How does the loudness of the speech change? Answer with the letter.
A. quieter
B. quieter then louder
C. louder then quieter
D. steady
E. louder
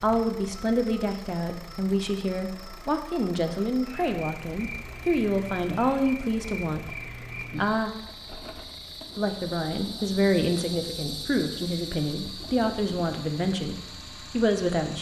D.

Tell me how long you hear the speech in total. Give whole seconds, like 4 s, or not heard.
14 s.